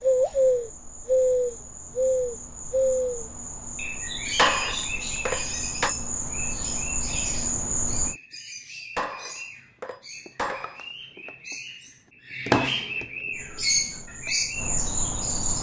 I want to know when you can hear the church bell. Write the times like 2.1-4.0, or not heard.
not heard.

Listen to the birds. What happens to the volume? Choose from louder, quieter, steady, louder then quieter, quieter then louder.
quieter then louder.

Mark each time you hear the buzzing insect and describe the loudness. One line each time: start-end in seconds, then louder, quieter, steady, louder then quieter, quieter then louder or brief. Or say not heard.
0.0-8.2 louder
13.3-15.5 brief.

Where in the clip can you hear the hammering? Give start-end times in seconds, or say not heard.
4.3-6.0, 8.9-10.8.